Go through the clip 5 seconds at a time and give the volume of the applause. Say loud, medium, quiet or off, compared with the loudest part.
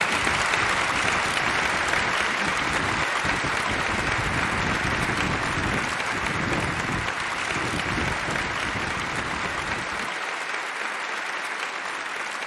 loud, loud, medium.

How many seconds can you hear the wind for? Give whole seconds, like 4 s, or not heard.
10 s.